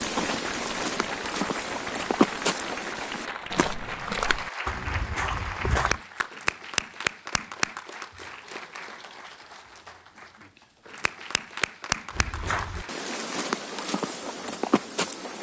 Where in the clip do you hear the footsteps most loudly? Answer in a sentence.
The volume of the footsteps peaks at 2 seconds.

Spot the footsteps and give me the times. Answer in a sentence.
The footsteps can be heard from 0.0 to 6.0 s and from 12.1 to 15.3 s.